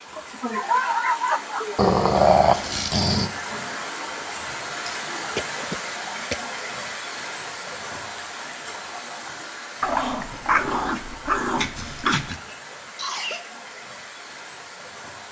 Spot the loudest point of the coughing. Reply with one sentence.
The loudest moment of the coughing is at 1 second.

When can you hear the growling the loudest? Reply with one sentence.
The volume of the growling peaks at 2 seconds.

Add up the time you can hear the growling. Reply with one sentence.
You can hear the growling for 4 seconds altogether.